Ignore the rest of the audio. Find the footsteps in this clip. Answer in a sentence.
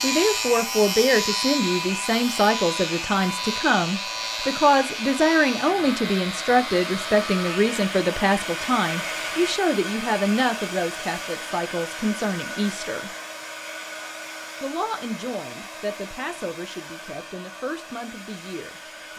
You can't hear the footsteps here.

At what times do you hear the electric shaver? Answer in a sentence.
You can hear the electric shaver from 0.0 to 9.6 s.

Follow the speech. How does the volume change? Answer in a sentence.
The volume of the speech goes down.